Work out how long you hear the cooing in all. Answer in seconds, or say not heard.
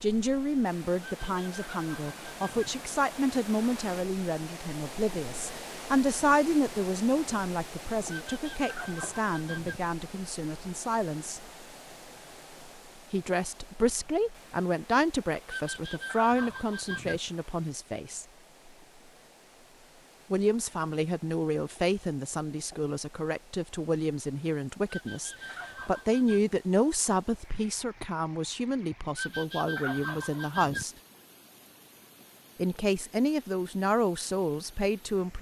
8 s.